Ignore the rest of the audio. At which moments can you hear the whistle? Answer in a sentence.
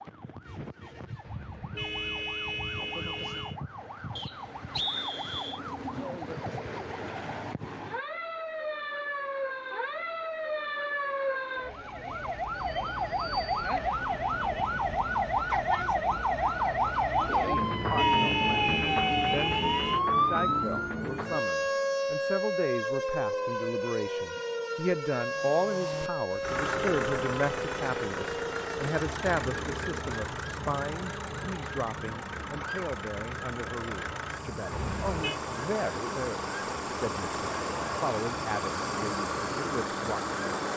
You can hear the whistle from 4.2 to 5.6 s.